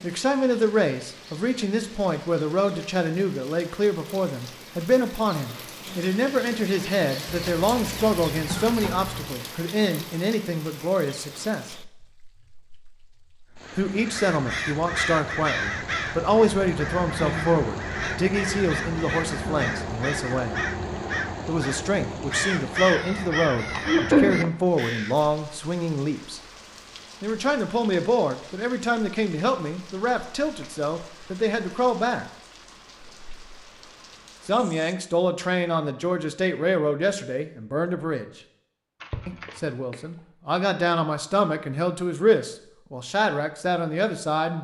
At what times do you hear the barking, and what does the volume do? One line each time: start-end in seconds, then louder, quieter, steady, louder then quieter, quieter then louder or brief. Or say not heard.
not heard.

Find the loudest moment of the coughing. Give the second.
24 s.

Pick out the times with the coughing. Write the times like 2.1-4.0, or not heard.
7.5-9.2, 23.8-24.4, 39.0-40.0.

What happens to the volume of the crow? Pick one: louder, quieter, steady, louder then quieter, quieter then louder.
steady.